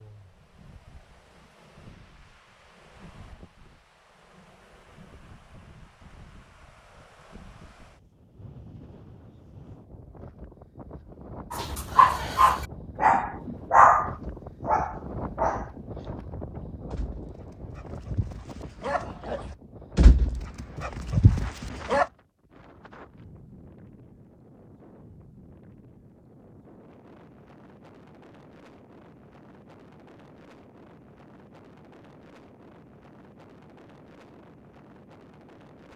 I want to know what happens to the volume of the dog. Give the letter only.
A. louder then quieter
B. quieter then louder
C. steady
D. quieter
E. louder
B.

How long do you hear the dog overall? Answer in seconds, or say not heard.
10 s.